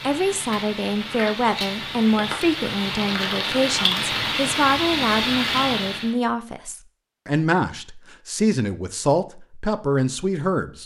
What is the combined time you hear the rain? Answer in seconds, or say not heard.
6 s.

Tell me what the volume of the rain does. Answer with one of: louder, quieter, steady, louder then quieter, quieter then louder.
louder.